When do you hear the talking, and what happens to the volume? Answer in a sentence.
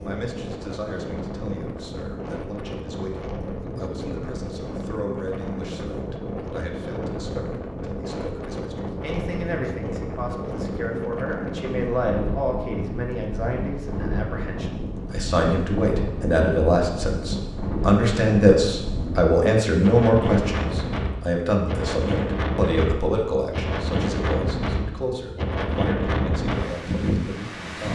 You can hear the talking from 0.0 to 27.9 s, getting louder then quieter.